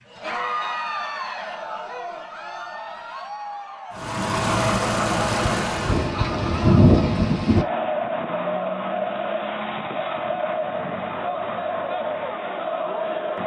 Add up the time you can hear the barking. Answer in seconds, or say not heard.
not heard.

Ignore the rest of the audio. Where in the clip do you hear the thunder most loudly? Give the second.
7 s.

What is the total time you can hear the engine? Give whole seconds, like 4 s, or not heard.
2 s.